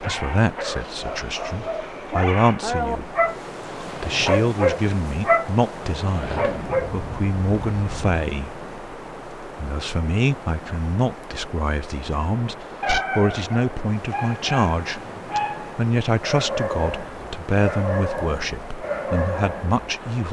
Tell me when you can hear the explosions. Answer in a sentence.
The explosions can be heard from 6.2 to 8.2 s.